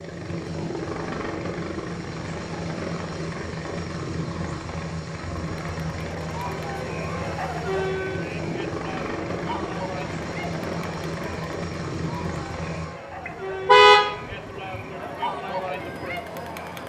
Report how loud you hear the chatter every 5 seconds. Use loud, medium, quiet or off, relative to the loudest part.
off, loud, medium, loud.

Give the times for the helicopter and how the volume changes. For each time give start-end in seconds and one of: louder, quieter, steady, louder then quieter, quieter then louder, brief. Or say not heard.
0.0-16.8 quieter.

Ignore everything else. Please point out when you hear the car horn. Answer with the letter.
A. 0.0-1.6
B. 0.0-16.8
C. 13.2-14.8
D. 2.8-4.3
C.